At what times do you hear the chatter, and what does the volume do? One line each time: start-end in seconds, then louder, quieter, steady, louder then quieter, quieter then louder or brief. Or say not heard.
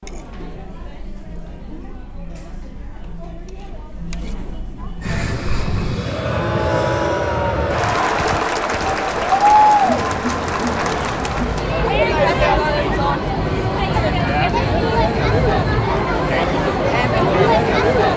0.0-18.1 louder.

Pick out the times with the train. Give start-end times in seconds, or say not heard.
5.0-18.1.